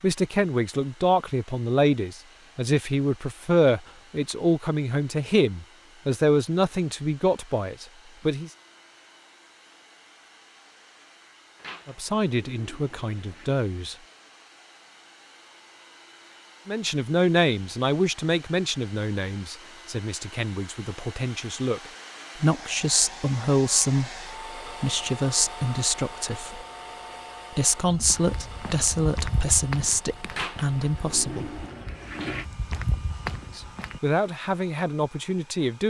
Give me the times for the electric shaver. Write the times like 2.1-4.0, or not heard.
not heard.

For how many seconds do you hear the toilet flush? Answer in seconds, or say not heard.
4 s.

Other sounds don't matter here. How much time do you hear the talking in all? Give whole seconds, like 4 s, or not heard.
26 s.